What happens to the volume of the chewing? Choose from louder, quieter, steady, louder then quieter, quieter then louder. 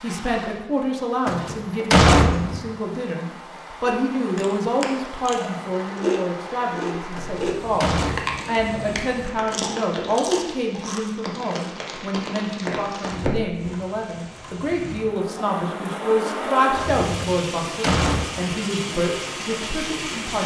louder then quieter.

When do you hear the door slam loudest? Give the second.
2 s.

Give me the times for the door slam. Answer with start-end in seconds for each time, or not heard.
1.2-2.6, 7.2-8.2, 17.2-18.3.